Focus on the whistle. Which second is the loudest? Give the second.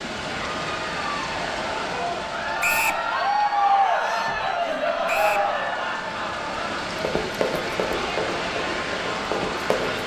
3 s.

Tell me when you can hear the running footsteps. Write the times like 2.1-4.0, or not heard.
7.0-10.0.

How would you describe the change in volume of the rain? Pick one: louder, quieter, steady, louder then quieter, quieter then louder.
quieter then louder.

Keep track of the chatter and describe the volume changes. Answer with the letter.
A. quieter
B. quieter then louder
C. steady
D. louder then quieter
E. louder
D.